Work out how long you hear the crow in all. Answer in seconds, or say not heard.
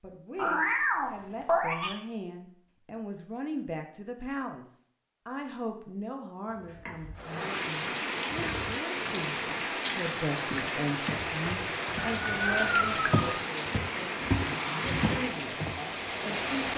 not heard.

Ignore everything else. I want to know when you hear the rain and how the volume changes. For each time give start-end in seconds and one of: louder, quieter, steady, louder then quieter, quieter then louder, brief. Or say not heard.
7.2-16.7 steady.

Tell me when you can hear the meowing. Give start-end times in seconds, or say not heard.
0.3-1.9, 6.7-7.2, 12.1-13.2.